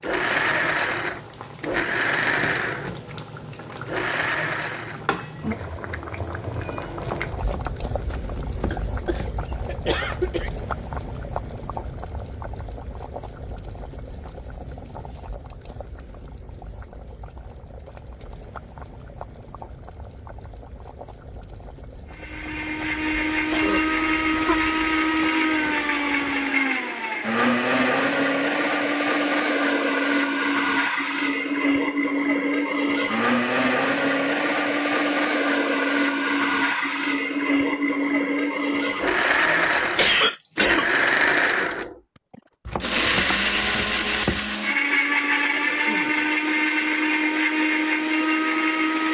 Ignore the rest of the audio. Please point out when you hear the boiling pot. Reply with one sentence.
You can hear the boiling pot from 0.0 to 25.1 s.